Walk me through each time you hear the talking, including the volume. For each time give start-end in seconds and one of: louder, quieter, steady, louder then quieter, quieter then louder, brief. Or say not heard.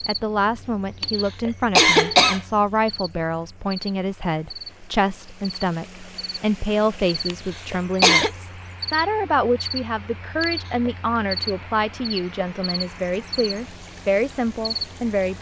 0.1-15.3 steady.